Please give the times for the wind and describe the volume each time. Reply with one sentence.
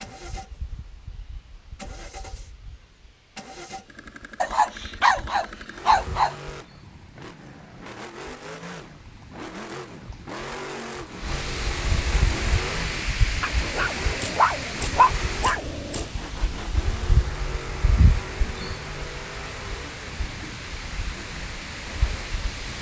You can hear the wind from 0.0 to 22.7 s, getting louder.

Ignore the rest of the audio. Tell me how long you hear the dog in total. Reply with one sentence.
The dog can be heard for 5 seconds in total.